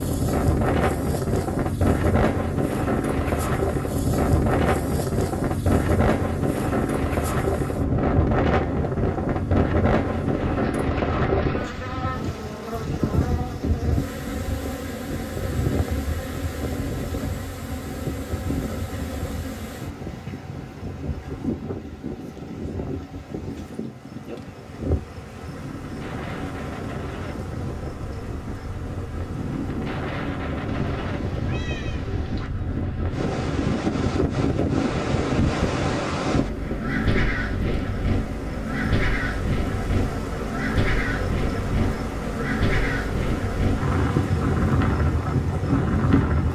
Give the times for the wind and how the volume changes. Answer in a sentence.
The wind can be heard from 0.0 to 46.5 s, getting quieter then louder.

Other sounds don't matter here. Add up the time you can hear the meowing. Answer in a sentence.
You can hear the meowing for 2 seconds altogether.